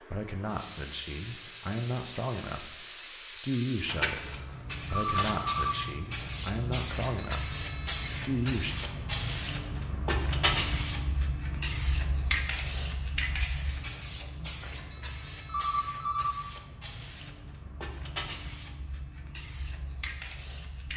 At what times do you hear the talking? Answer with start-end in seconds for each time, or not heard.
0.1-8.8.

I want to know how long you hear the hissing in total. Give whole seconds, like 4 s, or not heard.
21 s.